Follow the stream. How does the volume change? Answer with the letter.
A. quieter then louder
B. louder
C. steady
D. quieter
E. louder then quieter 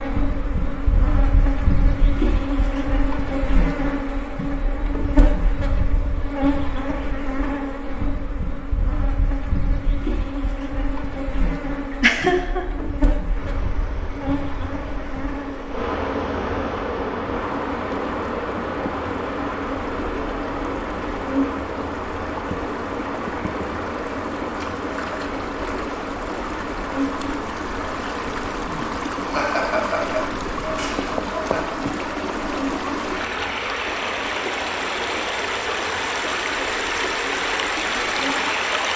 B.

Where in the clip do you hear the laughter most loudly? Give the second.
12 s.